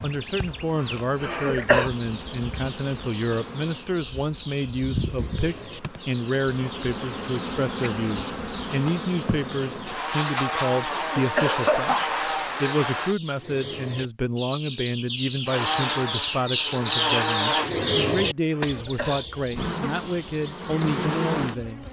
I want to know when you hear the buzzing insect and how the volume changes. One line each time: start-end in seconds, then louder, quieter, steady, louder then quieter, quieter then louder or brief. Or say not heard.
0.0-13.2 louder
15.4-17.7 brief
19.5-21.8 brief.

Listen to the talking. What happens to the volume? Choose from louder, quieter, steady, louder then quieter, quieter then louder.
steady.